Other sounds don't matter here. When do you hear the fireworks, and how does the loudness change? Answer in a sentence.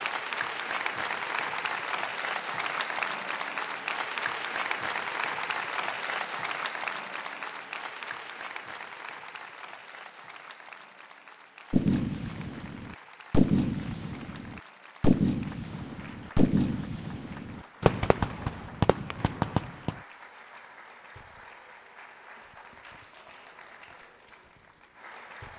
The fireworks can be heard from 11.7 to 19.9 s, at a steady volume.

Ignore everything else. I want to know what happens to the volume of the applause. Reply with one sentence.
The volume of the applause goes down.